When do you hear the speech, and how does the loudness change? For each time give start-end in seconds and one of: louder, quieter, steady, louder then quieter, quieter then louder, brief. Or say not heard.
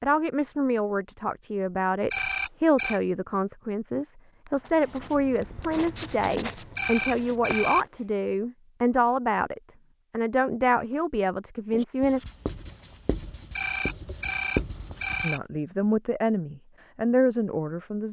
0.0-12.2 steady
15.2-18.0 brief.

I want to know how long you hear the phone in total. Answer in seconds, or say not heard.
4 s.